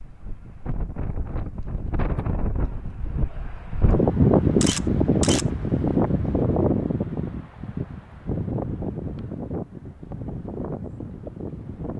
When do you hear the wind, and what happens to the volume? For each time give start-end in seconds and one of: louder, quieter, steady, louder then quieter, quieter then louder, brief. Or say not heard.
0.0-11.9 louder then quieter.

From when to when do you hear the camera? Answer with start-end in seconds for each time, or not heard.
4.6-5.5.